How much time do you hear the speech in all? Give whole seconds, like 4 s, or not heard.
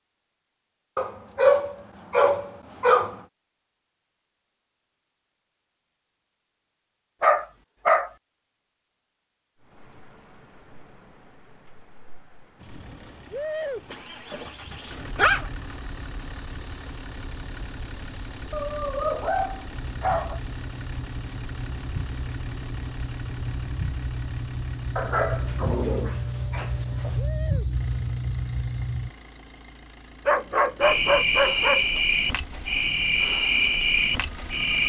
not heard.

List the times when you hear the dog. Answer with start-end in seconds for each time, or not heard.
0.9-3.1, 7.2-8.1, 13.9-15.5, 18.5-20.4, 24.9-27.2, 30.2-32.0.